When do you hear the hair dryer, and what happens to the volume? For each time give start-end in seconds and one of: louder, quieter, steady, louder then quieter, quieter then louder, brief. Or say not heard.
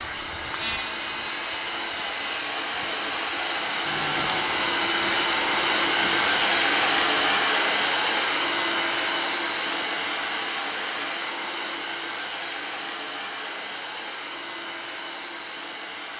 0.0-16.1 louder then quieter.